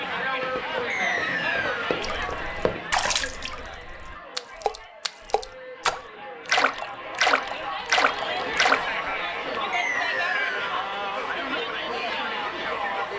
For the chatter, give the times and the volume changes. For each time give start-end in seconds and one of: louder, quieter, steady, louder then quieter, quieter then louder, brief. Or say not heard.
0.0-13.1 quieter then louder.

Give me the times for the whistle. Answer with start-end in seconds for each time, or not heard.
0.9-1.9, 9.7-10.7.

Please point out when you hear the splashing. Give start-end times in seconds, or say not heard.
2.0-8.8.